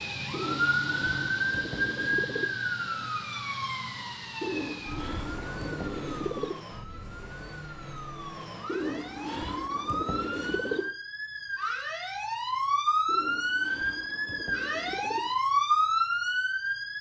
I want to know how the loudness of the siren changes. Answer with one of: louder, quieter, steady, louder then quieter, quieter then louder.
quieter then louder.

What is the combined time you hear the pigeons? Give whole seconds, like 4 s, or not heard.
9 s.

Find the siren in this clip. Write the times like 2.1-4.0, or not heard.
0.0-16.9.